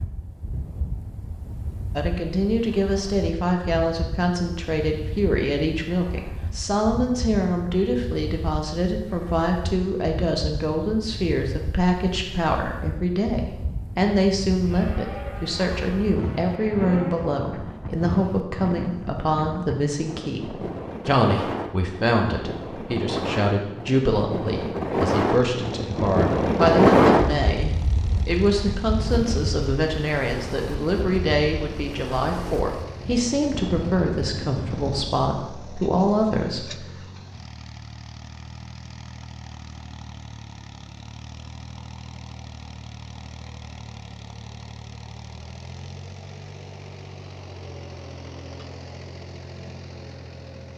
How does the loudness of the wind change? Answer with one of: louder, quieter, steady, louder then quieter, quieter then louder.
louder then quieter.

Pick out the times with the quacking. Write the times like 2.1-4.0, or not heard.
not heard.